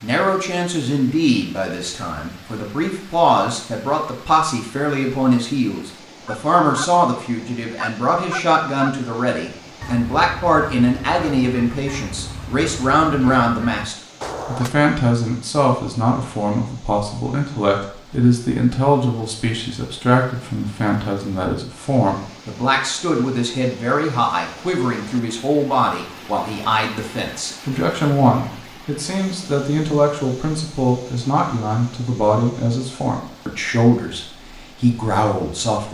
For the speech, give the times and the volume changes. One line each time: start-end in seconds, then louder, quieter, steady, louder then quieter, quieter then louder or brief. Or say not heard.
0.0-35.8 steady.